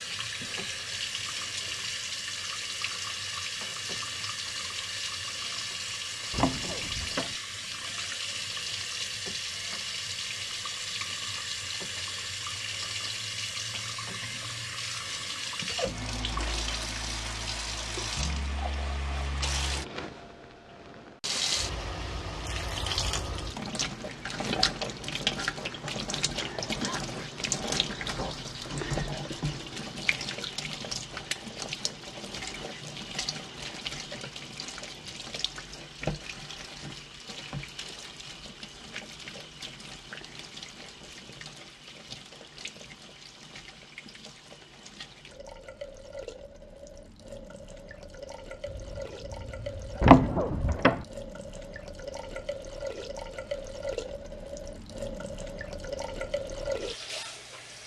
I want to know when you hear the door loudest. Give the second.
50 s.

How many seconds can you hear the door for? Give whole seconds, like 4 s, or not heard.
2 s.